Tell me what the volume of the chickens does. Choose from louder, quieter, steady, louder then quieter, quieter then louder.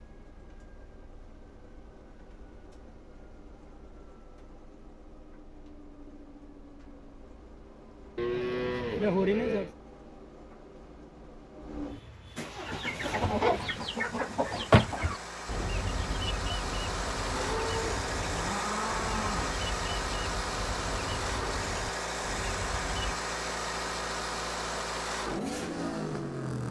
quieter.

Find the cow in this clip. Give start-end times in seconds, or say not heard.
8.2-9.7, 17.3-19.6.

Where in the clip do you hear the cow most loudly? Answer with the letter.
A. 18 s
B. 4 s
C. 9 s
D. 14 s
C.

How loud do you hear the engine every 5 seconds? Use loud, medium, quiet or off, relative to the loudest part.
quiet, quiet, medium, loud, loud, loud.